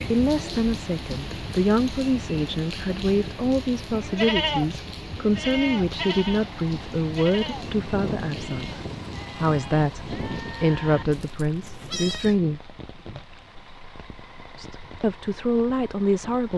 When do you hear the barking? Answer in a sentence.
The barking can't be heard in this clip.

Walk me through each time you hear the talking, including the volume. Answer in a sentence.
You can hear the talking from 0.0 to 12.6 s, at a steady volume; and briefly from 14.6 to 16.5 s.